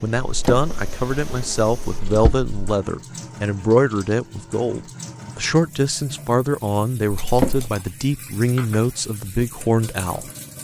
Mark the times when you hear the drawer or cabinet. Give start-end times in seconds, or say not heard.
0.2-2.5, 7.2-7.8.